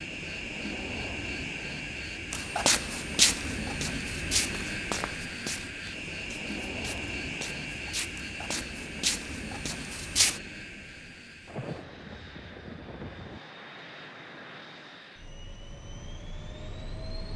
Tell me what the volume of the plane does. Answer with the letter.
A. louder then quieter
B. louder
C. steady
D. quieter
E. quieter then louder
D.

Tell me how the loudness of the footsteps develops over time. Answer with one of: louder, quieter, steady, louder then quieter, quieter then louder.
quieter then louder.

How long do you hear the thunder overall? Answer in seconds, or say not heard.
2 s.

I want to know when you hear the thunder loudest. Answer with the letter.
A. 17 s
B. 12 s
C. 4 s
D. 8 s
B.